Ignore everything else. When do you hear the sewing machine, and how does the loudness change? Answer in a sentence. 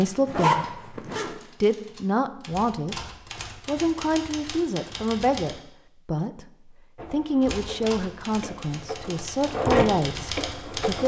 You can hear the sewing machine from 7.0 to 11.0 s, getting louder then quieter.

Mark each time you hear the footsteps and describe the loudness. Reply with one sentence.
The footsteps can't be heard in this clip.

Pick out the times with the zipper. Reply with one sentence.
The zipper can be heard from 0.2 to 1.4 s.